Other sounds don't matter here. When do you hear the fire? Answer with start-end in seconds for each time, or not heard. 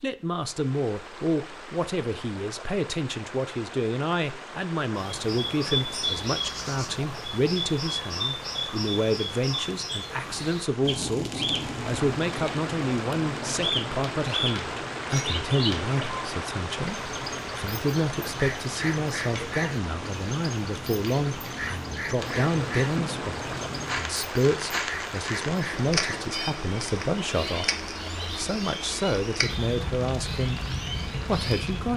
10.8-31.9.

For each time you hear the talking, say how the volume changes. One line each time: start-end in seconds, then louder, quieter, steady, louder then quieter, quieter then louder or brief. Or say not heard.
0.0-30.6 steady
31.2-31.9 brief.